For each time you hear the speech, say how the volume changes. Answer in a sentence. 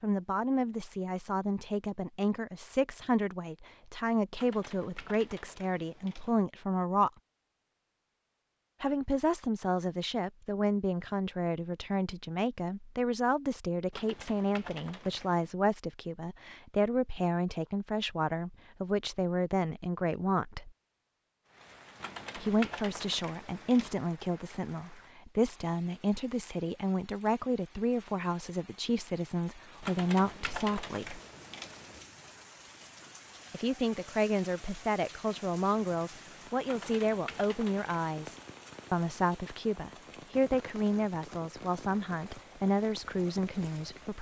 The speech can be heard from 0.0 to 7.1 s, at a steady volume; from 8.8 to 20.7 s, at a steady volume; from 22.4 to 31.2 s, at a steady volume; and from 33.5 to 44.1 s, at a steady volume.